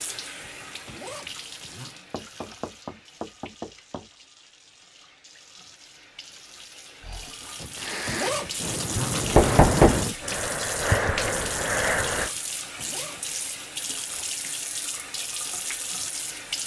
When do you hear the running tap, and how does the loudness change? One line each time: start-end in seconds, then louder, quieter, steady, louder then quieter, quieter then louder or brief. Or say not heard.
0.0-16.6 quieter then louder.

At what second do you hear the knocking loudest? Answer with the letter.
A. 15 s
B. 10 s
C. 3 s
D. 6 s
B.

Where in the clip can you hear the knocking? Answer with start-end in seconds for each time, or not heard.
2.1-4.0, 9.3-10.1.